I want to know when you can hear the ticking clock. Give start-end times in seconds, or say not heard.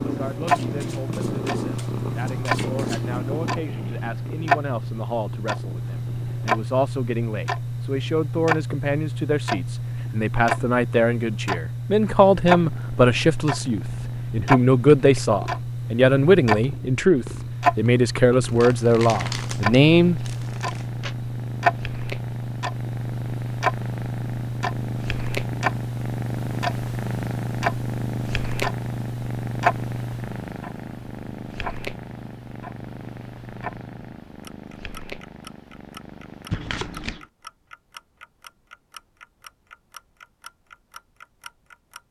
0.1-42.0.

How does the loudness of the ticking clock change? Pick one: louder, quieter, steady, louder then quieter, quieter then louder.
quieter.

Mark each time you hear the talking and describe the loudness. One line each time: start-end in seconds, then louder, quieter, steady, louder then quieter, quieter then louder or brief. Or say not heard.
0.0-20.2 louder.